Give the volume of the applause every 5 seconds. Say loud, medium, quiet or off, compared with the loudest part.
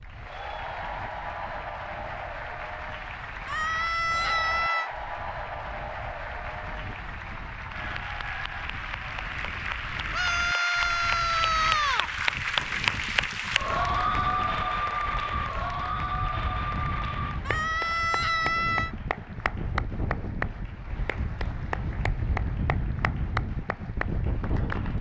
medium, medium, loud, medium, medium.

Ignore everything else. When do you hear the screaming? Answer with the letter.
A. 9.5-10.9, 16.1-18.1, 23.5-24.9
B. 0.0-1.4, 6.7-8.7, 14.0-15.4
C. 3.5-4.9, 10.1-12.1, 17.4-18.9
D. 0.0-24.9
C.